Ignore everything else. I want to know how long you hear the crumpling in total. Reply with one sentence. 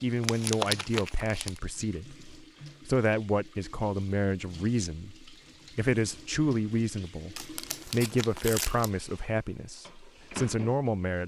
You can hear the crumpling for 3 seconds altogether.